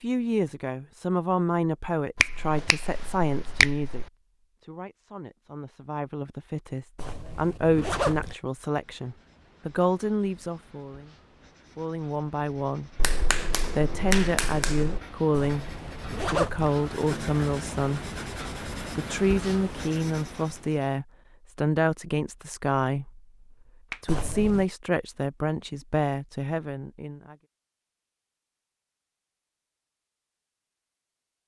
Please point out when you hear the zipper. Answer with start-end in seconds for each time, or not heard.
7.0-8.3, 15.3-16.7, 24.1-24.6.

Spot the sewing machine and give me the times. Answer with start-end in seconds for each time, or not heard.
not heard.